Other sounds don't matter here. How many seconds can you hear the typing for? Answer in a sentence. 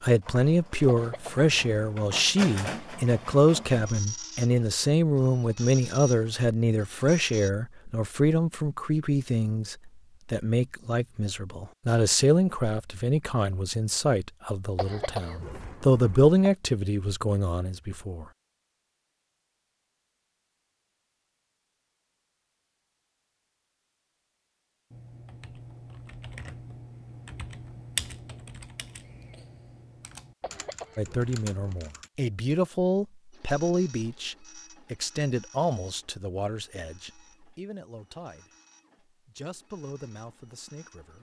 The typing can be heard for 7 seconds in total.